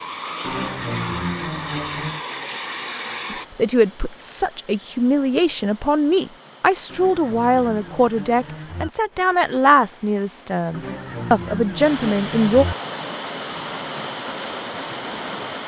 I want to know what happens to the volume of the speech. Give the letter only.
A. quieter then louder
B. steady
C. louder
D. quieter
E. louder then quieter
B.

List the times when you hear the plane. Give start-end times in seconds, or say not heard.
0.0-3.5.